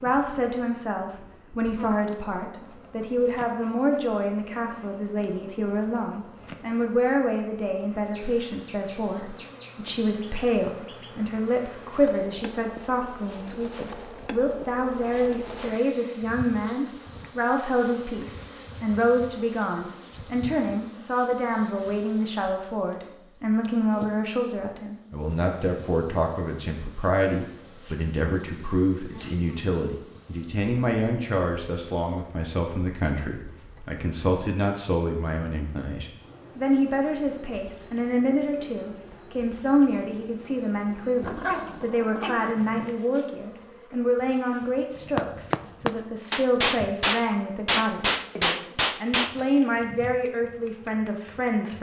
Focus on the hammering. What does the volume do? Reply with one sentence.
The loudness of the hammering stays about the same.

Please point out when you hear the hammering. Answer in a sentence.
The hammering can be heard from 45.0 to 49.5 s.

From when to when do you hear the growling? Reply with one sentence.
The growling can be heard from 41.2 to 42.9 s.